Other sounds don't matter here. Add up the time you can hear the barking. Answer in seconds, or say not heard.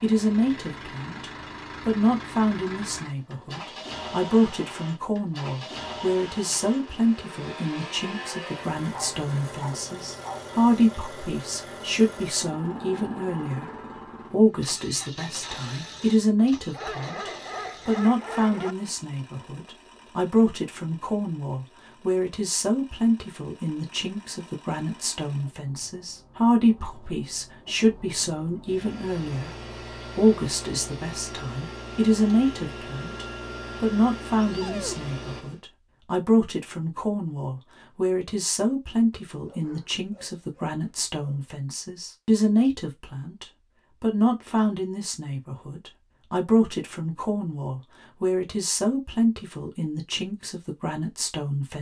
6 s.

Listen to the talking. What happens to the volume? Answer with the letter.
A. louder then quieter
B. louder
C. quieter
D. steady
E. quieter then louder
D.